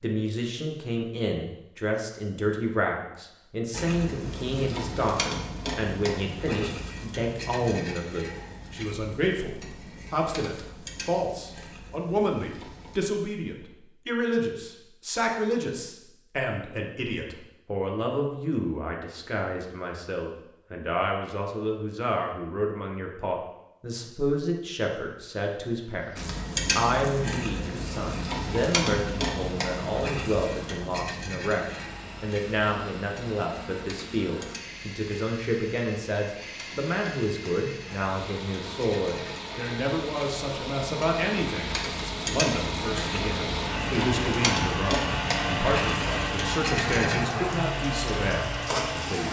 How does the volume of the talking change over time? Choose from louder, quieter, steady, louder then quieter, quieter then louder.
steady.